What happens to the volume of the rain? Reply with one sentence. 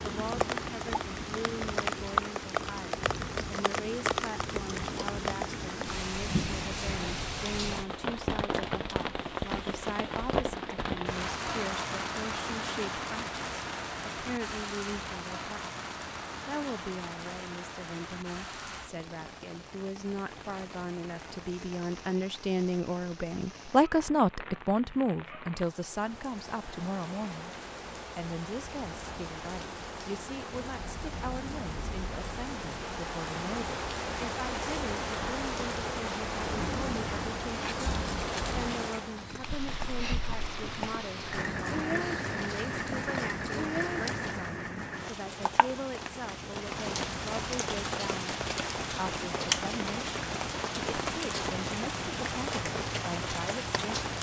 The volume of the rain goes down, then up.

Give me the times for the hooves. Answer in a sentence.
You can hear the hooves from 37.5 to 44.3 s.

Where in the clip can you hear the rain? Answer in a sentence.
You can hear the rain from 0.0 to 54.1 s.